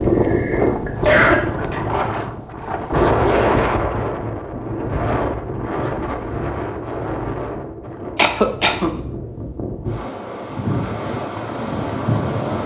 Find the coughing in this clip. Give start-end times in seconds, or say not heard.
0.0-1.8, 8.2-8.9.